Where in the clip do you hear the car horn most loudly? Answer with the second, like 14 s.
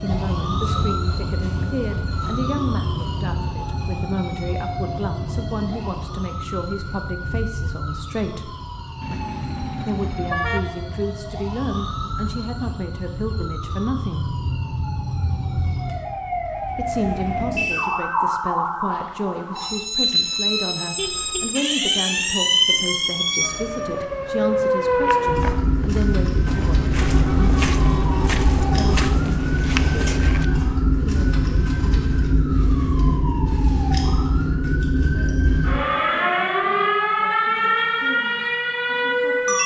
10 s.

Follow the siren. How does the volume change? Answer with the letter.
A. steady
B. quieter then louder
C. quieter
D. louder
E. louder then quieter
D.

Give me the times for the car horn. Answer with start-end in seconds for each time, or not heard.
9.0-10.7, 20.9-21.5, 27.0-29.2.